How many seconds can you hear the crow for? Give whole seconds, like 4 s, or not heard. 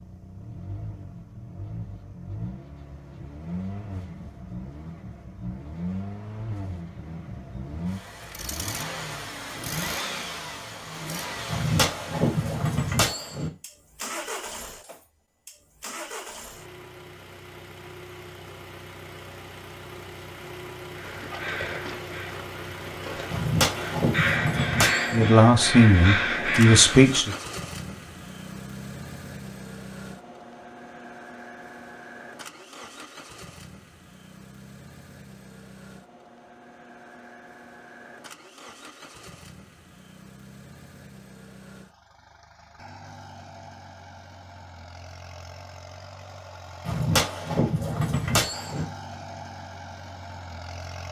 6 s.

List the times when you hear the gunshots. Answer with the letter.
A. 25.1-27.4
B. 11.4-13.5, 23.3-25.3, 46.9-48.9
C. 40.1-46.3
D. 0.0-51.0
B.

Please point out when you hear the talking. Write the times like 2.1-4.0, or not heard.
25.1-27.4.